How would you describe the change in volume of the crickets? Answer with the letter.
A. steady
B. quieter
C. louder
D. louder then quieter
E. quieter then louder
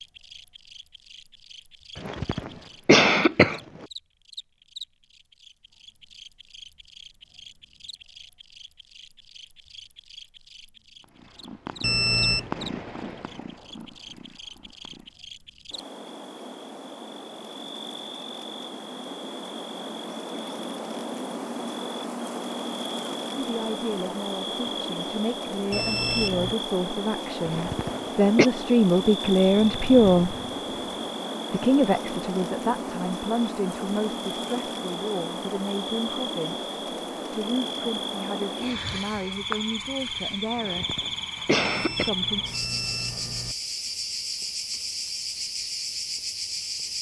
C.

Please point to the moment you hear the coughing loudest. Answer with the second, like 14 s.
3 s.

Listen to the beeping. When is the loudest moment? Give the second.
12 s.